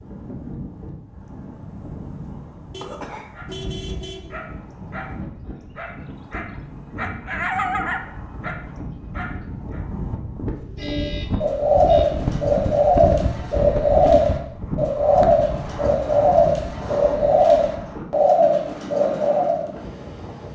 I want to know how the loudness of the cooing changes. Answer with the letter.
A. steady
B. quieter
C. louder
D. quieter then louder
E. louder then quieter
A.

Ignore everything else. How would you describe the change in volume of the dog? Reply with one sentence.
The loudness of the dog goes up, then down.